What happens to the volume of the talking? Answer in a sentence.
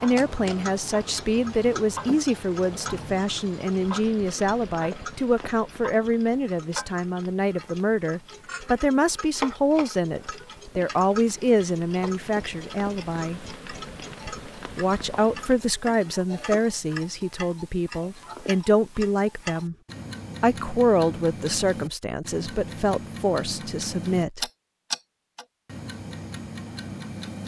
The volume of the talking stays about the same.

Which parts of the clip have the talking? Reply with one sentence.
The talking can be heard from 0.0 to 13.4 s, from 14.8 to 19.8 s and from 20.4 to 24.4 s.